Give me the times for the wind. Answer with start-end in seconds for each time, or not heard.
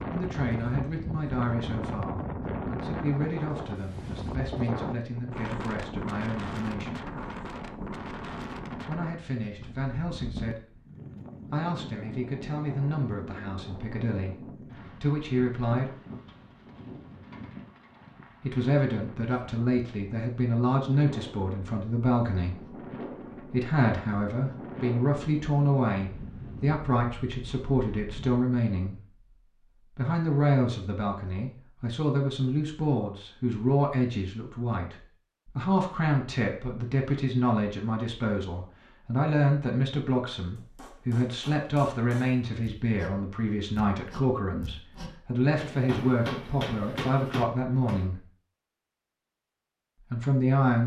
0.0-28.4.